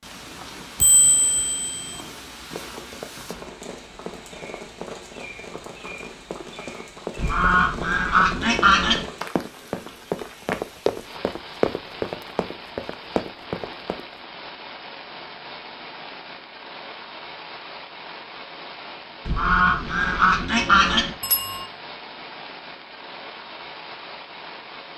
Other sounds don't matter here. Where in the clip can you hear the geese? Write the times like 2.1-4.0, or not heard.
7.2-9.1, 19.2-21.1.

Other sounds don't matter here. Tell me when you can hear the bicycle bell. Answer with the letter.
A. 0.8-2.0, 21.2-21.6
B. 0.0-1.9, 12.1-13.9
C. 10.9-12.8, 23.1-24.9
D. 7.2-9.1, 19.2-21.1
A.